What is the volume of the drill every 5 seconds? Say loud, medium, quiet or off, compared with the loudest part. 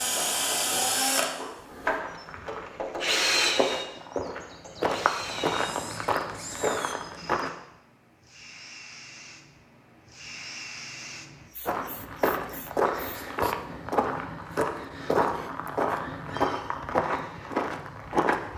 loud, medium, off, off.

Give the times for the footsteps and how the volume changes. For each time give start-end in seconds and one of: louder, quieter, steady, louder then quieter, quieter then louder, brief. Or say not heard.
0.0-7.5 louder
11.7-18.5 steady.